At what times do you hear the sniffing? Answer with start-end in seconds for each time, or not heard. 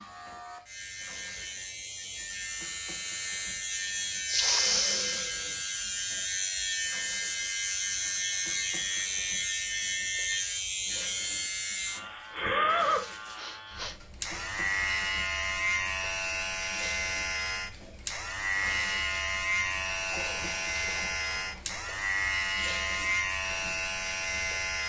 4.2-5.5, 13.3-14.0, 19.9-21.8.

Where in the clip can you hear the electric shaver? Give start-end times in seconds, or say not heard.
0.0-24.8.